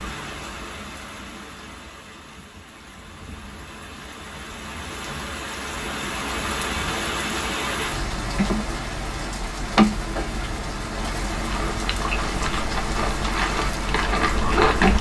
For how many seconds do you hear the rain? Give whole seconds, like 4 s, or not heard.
15 s.